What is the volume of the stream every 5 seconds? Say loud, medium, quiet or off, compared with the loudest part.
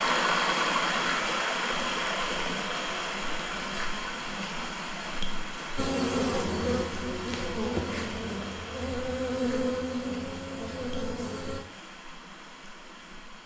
loud, medium, quiet.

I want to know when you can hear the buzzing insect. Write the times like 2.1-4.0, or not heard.
5.8-11.6.